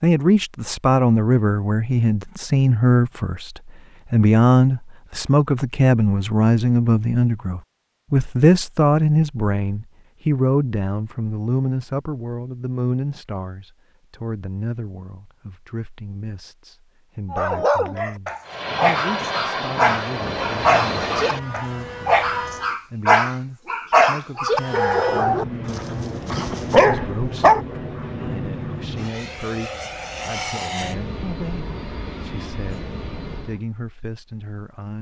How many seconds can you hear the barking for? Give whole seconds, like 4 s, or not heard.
10 s.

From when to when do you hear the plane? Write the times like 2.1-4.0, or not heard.
18.4-22.8, 24.4-33.6.